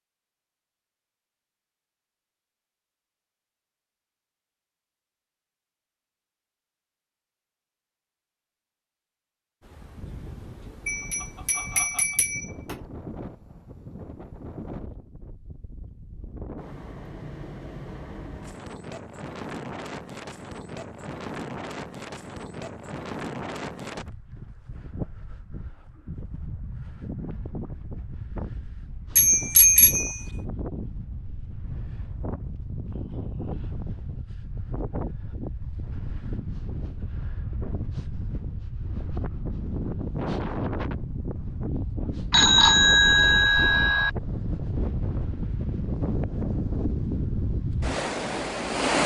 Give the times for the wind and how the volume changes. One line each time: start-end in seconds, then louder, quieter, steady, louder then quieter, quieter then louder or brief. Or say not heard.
9.6-49.0 louder.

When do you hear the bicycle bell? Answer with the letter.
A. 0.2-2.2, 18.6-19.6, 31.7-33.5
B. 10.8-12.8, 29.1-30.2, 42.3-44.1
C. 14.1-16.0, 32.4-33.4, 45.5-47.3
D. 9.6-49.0
B.